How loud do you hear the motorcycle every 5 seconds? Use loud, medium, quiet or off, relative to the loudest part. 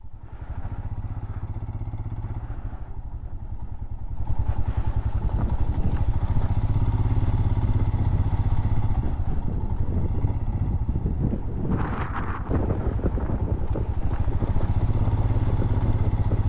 medium, loud, medium, loud.